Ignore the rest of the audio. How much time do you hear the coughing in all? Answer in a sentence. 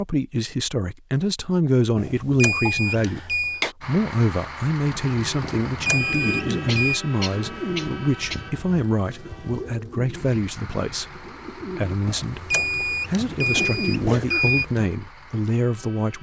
You can hear the coughing for 4 seconds altogether.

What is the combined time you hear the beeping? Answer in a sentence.
The beeping can be heard for 6 seconds in total.